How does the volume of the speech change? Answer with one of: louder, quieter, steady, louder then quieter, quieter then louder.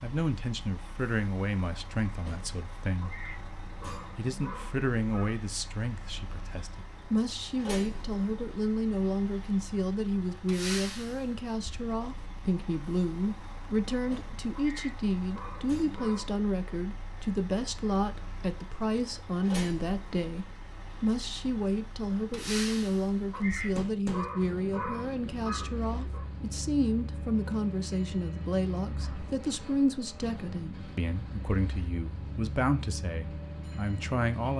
steady.